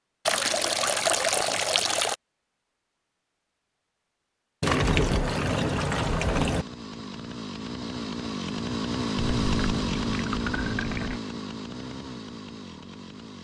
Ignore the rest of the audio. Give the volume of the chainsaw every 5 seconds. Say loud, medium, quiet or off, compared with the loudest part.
off, loud, loud.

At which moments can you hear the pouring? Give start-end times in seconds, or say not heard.
0.2-2.1, 4.6-6.7, 9.2-11.2.